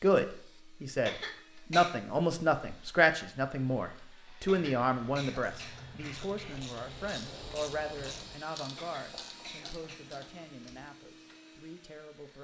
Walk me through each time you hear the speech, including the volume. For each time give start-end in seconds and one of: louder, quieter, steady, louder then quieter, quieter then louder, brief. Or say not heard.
0.0-12.3 quieter.